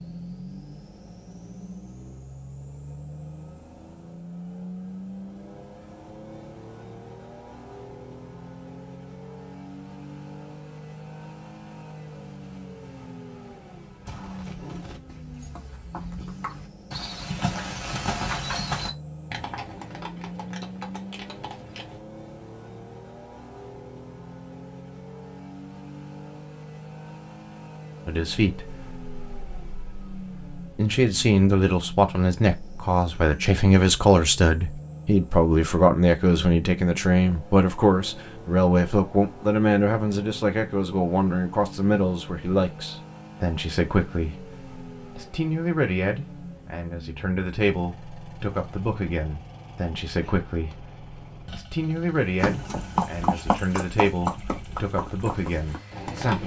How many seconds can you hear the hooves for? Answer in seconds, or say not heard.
12 s.